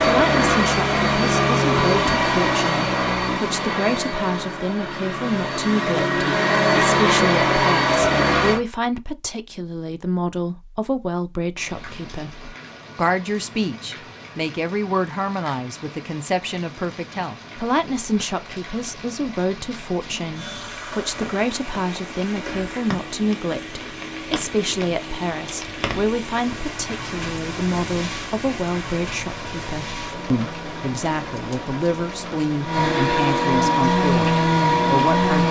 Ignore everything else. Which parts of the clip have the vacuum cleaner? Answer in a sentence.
You can hear the vacuum cleaner from 0.0 to 8.6 s and from 20.3 to 35.4 s.